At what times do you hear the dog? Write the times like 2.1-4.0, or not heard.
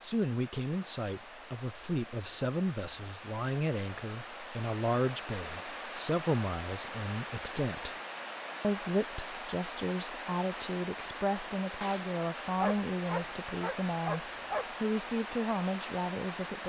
12.6-14.7.